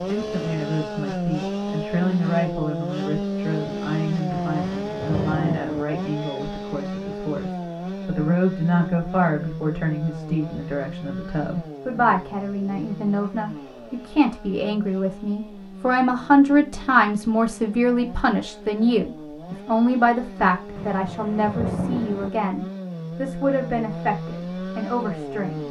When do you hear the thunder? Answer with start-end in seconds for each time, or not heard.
4.3-5.8, 20.8-22.3.